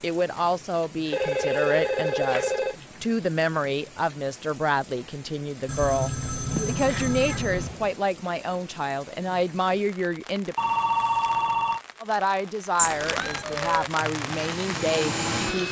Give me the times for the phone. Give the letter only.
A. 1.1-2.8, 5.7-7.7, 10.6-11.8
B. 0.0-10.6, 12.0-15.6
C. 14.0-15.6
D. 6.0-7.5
A.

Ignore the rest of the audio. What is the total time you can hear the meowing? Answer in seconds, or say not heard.
4 s.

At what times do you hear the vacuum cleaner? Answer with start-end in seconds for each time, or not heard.
14.0-15.6.